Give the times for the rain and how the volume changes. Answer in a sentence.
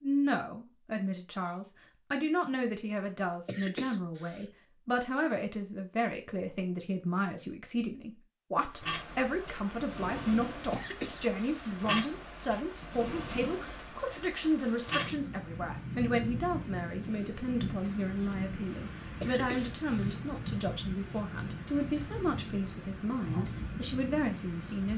You can hear the rain from 8.7 to 24.9 s, at a steady volume.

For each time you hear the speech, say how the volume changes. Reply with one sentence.
You can hear the speech from 0.0 to 24.9 s, at a steady volume.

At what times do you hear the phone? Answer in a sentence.
The phone can't be heard in this clip.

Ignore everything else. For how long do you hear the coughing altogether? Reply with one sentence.
You can hear the coughing for 3 seconds altogether.